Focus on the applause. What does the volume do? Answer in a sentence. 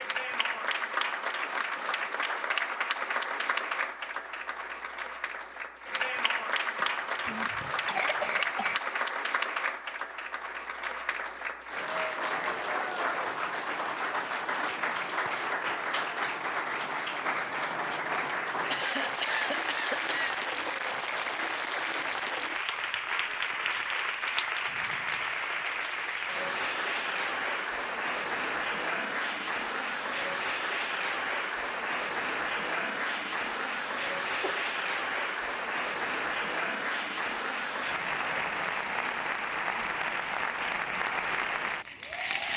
The volume of the applause stays about the same.